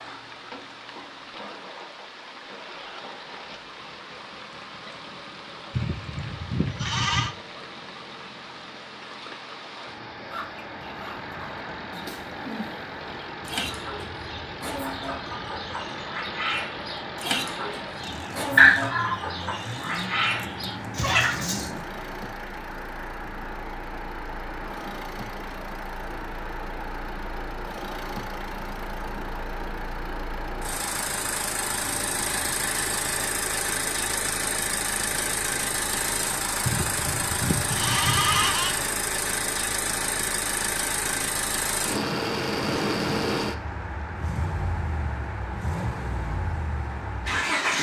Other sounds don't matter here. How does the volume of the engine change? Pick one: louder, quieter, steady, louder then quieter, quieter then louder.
louder.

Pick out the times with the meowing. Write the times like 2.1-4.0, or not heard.
18.6-19.1.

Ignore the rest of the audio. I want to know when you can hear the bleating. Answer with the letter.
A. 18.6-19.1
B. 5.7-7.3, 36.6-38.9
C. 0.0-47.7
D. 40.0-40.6
B.